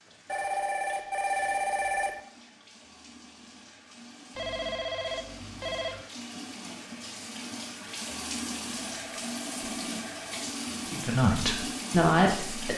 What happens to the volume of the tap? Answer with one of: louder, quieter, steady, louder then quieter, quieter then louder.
louder.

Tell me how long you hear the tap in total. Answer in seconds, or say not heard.
13 s.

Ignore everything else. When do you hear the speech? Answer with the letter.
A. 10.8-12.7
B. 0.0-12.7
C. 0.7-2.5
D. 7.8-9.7
A.